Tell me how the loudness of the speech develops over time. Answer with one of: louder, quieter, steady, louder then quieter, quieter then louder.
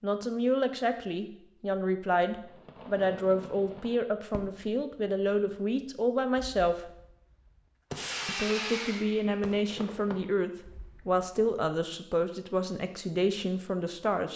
steady.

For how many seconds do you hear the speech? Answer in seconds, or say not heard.
13 s.